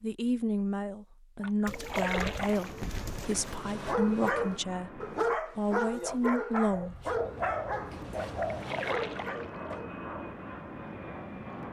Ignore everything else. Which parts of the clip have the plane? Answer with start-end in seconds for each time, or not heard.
2.5-5.4, 7.0-11.6.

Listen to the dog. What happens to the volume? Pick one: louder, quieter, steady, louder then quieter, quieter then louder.
quieter.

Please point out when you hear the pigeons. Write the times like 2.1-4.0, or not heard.
1.6-3.6, 6.7-8.7.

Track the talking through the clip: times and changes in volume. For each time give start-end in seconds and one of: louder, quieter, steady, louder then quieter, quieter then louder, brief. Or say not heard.
0.0-7.0 steady.